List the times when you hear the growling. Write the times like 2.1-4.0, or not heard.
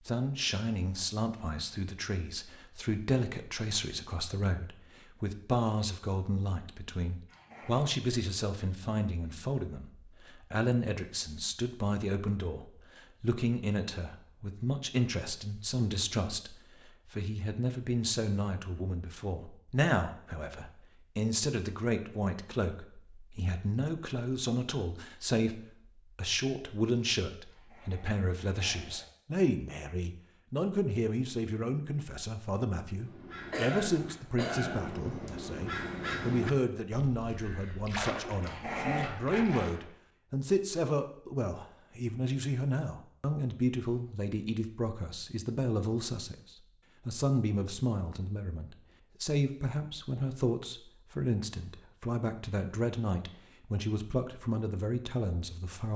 7.2-7.9, 27.4-29.1, 38.4-39.6.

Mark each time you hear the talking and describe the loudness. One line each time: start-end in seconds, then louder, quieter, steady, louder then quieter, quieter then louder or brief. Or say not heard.
0.1-55.9 steady.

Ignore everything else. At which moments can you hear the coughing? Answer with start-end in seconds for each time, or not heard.
33.5-34.9.